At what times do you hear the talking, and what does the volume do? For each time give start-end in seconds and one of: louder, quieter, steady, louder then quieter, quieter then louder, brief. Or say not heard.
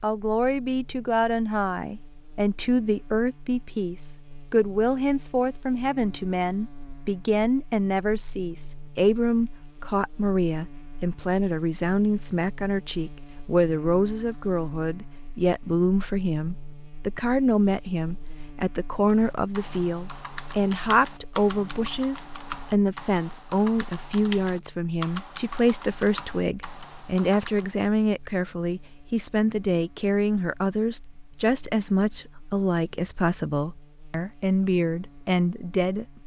0.0-36.2 steady.